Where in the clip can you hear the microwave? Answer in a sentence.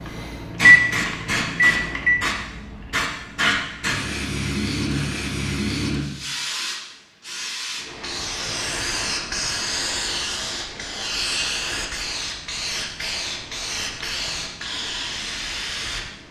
The microwave can be heard from 0.6 to 2.2 s.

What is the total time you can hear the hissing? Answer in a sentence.
The hissing can be heard for 16 seconds in total.